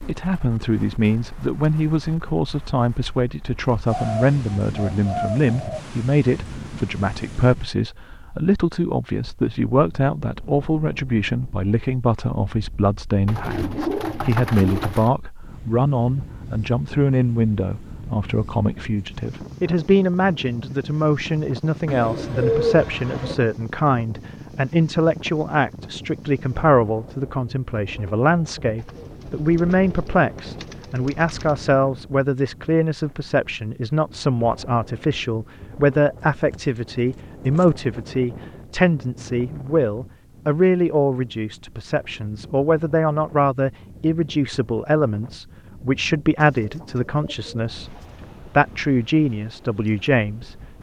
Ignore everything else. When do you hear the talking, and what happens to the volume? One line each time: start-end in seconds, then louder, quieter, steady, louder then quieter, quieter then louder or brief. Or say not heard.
0.1-48.0 steady
48.5-50.5 brief.